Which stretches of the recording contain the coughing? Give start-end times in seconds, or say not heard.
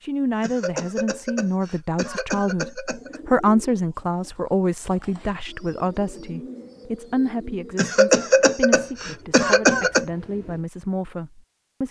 0.4-3.2, 7.8-10.1.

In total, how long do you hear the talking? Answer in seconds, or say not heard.
12 s.